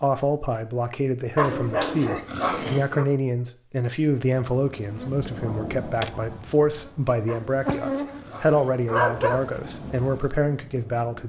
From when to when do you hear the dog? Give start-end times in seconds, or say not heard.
1.4-3.0, 7.2-9.4.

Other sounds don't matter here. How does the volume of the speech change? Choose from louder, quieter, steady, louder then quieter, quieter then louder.
steady.